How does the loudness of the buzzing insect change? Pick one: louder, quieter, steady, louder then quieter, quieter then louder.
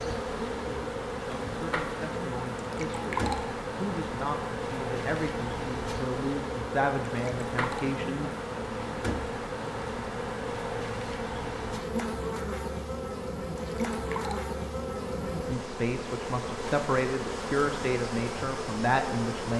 steady.